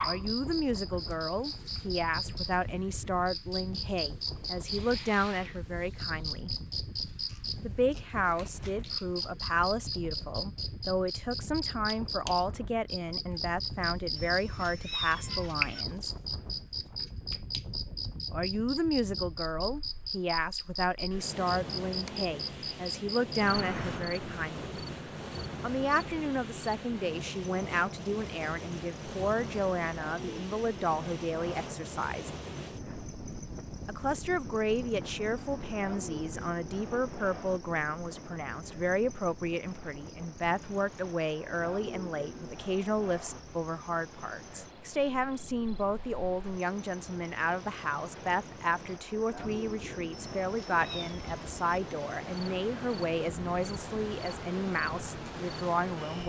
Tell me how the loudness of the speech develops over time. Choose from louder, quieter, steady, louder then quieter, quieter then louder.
steady.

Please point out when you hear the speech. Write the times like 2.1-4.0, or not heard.
0.0-6.5, 7.6-16.1, 18.3-24.7, 25.6-32.3, 33.9-56.2.